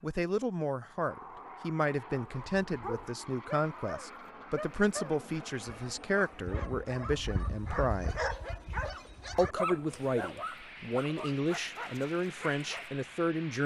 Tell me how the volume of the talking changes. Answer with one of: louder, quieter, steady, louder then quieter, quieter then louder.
steady.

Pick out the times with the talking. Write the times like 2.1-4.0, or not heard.
0.0-8.2, 9.3-13.6.